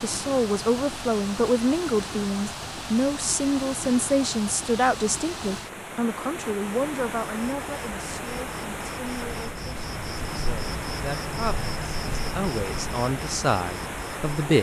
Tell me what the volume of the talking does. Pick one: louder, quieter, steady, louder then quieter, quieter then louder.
quieter then louder.